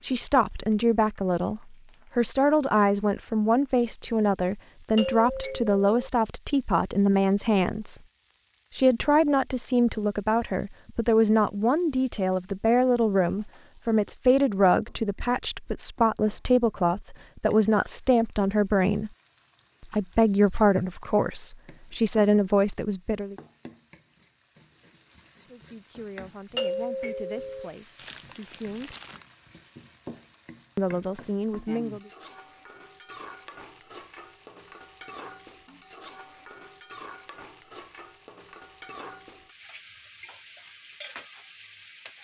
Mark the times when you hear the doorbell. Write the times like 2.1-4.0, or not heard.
5.0-6.1, 26.6-27.7.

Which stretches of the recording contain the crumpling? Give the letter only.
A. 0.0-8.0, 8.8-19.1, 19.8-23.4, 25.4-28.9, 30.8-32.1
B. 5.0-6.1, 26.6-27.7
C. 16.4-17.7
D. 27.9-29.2
D.